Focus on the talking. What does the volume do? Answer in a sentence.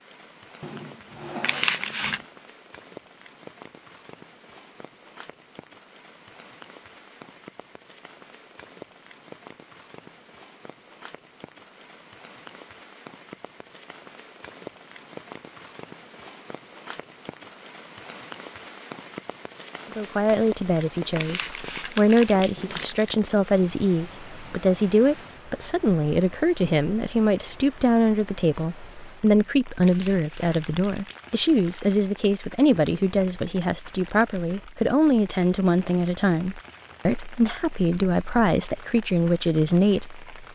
The volume of the talking stays about the same.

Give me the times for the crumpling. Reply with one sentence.
The crumpling can be heard from 1.4 to 2.2 s, from 21.1 to 23.1 s and from 29.8 to 31.8 s.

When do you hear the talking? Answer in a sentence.
The talking can be heard from 19.9 to 40.2 s.